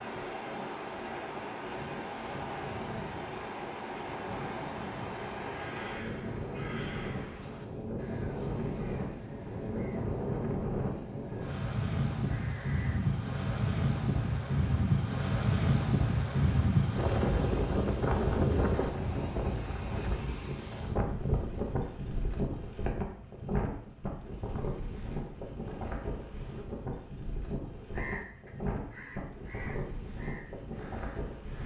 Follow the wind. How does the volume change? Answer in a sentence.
The volume of the wind goes up, then down.